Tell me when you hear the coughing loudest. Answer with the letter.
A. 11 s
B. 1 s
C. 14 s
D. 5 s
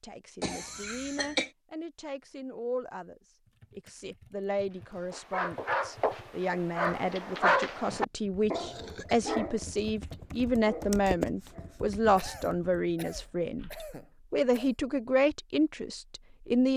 B.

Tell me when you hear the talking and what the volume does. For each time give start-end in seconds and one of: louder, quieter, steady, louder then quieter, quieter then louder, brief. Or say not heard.
0.0-16.7 louder.